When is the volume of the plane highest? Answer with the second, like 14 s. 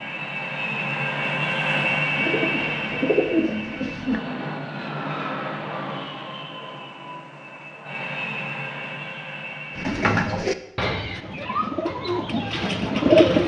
2 s.